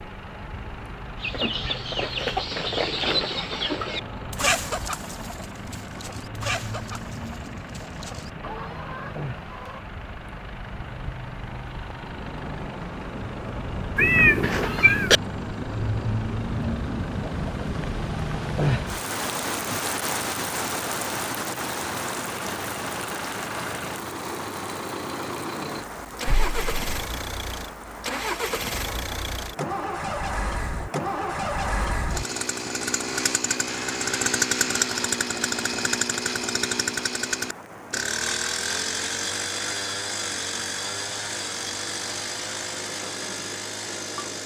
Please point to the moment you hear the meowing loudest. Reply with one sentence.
The volume of the meowing peaks at 14 seconds.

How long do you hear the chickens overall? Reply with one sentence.
You can hear the chickens for 9 seconds altogether.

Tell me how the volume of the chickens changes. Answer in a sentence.
The volume of the chickens goes down.